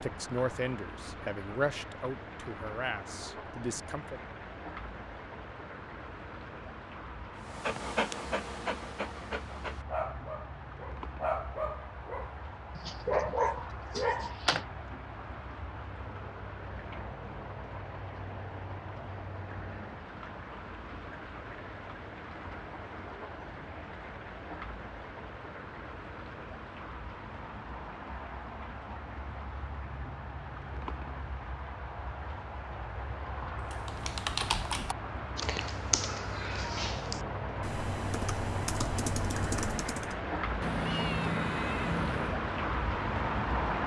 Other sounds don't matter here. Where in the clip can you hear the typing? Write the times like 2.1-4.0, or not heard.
33.6-40.1.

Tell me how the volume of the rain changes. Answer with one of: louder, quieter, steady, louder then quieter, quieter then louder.
louder.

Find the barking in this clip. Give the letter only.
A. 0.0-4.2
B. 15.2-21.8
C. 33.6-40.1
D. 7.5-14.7
D.